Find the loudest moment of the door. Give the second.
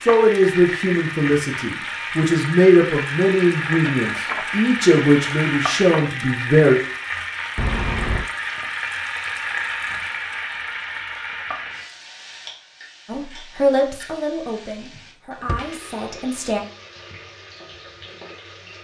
8 s.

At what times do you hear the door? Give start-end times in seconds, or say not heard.
4.0-4.5, 7.5-8.2, 14.9-15.8.